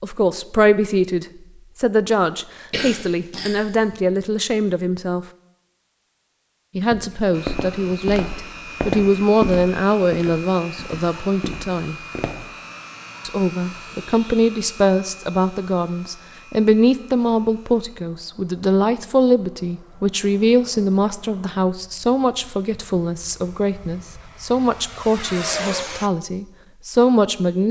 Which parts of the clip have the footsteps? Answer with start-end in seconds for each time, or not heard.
6.9-12.5.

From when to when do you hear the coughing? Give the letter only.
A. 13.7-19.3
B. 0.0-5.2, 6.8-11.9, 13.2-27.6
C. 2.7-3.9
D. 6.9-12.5
C.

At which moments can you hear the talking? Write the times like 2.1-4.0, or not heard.
0.0-5.2, 6.8-11.9, 13.2-27.6.